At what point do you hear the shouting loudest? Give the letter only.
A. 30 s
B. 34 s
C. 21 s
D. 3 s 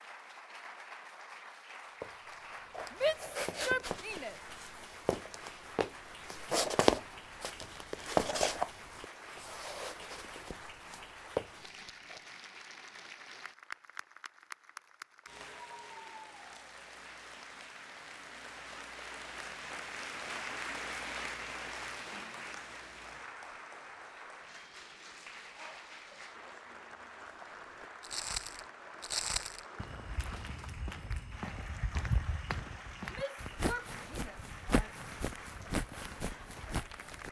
D.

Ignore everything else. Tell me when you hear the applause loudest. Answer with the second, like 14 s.
21 s.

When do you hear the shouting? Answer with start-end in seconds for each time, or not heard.
2.9-4.3, 33.1-34.9.